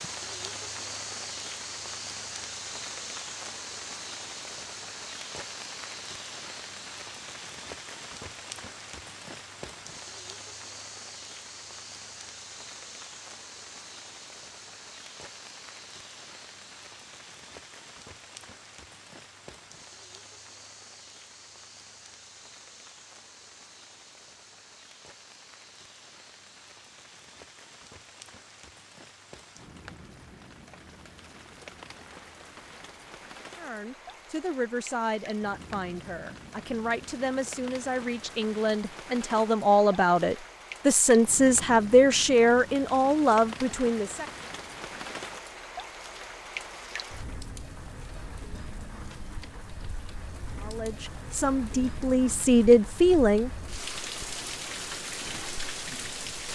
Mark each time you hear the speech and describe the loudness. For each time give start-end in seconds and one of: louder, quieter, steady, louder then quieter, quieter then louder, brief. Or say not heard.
33.5-44.2 louder
50.6-53.5 brief.